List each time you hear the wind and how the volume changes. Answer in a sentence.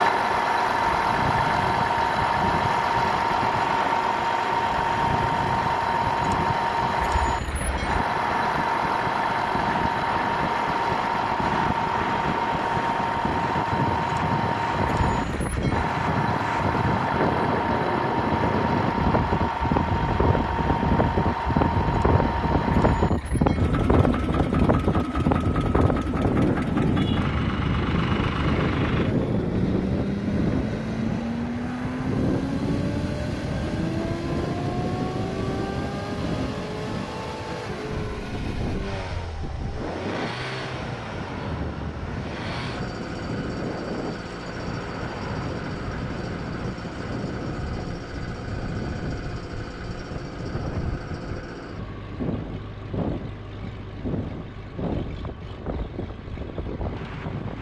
The wind can be heard from 0.1 to 57.5 s, getting louder then quieter.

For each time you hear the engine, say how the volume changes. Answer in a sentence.
You can hear the engine from 0.0 to 57.5 s, getting quieter.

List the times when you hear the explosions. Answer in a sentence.
The explosions can't be heard in this clip.